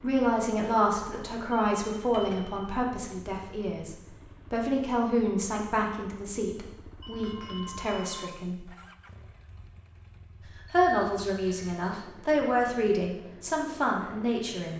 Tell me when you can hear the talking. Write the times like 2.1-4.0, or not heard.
0.0-8.7, 10.4-14.7.